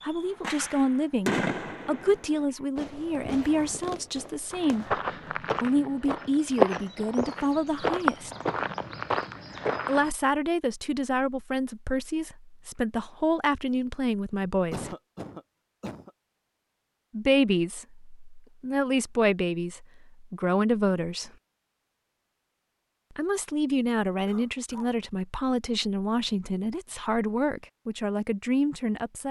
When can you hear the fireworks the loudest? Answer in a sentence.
The volume of the fireworks peaks at 1 second.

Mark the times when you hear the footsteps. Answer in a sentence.
You can hear the footsteps from 4.5 to 10.1 s.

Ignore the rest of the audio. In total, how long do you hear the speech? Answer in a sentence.
You can hear the speech for 23 seconds altogether.